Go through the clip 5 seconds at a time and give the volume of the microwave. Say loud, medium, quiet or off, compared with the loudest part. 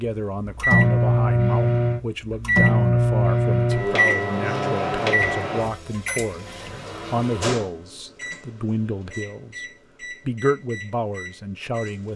loud, medium, quiet.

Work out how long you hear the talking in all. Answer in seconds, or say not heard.
12 s.